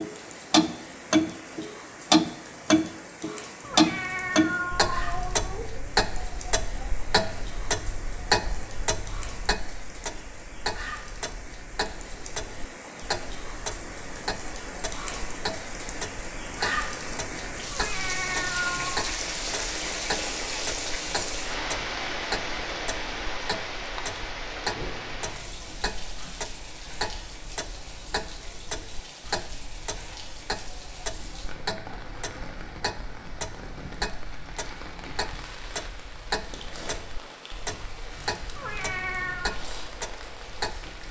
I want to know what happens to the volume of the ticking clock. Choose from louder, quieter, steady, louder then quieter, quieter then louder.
quieter.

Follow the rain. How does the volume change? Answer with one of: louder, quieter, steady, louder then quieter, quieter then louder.
louder then quieter.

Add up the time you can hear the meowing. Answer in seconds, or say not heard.
4 s.